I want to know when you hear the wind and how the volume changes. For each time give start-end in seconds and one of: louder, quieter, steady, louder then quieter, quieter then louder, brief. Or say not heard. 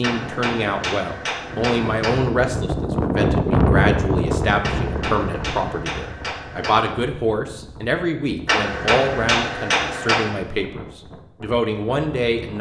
0.0-12.5 louder then quieter.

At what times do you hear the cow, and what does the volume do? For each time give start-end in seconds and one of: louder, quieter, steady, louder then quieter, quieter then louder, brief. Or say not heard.
not heard.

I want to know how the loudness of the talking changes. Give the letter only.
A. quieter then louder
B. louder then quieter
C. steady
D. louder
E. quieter
C.